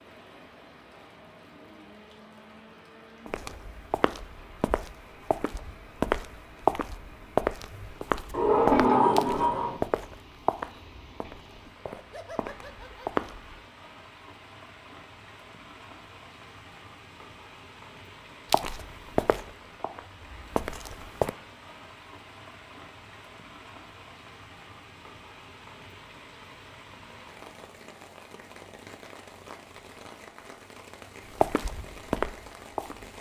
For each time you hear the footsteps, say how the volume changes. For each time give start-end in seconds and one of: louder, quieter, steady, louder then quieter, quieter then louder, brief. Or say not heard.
3.2-13.6 louder then quieter
18.5-21.3 brief
31.4-33.1 brief.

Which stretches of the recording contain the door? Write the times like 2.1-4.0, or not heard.
8.3-9.8.